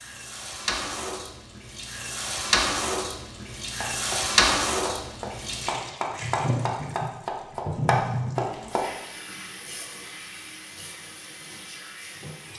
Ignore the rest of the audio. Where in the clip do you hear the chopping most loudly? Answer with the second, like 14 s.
8 s.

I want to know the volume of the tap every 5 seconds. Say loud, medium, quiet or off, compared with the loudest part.
loud, medium, quiet.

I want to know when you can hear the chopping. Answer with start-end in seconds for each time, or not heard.
3.8-8.8.